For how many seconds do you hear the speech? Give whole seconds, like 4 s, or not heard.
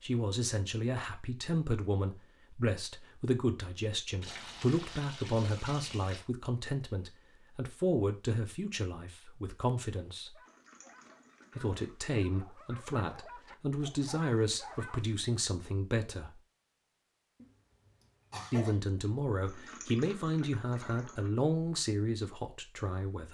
20 s.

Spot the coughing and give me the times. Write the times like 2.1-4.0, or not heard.
17.4-18.8.